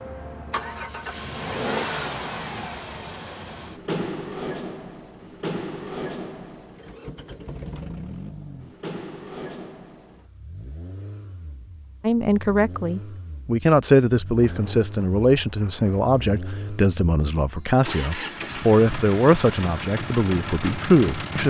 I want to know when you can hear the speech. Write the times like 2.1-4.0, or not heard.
12.0-21.4.